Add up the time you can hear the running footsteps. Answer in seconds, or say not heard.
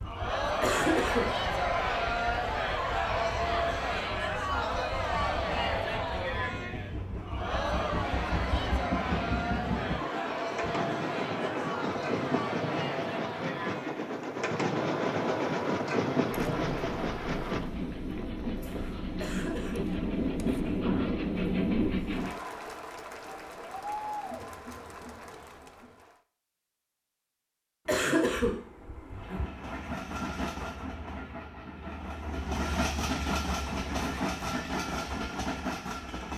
not heard.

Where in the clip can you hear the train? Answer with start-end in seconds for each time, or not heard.
0.0-22.4, 29.1-36.3.